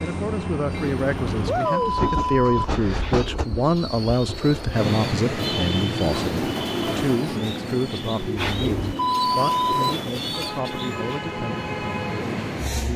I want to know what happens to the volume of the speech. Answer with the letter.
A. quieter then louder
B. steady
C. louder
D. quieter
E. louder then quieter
D.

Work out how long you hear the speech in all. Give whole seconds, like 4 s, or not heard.
13 s.